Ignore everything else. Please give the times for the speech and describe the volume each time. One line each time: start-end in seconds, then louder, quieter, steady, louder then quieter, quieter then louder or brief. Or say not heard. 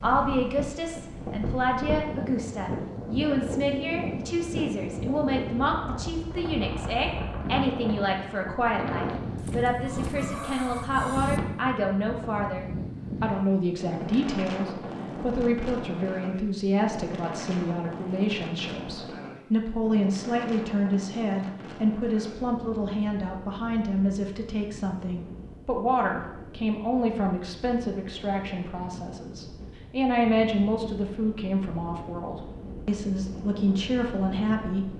0.0-34.9 steady.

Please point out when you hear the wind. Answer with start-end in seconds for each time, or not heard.
0.0-34.9.